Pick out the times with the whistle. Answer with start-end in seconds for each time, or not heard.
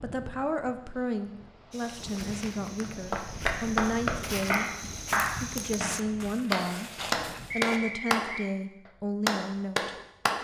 7.5-8.5.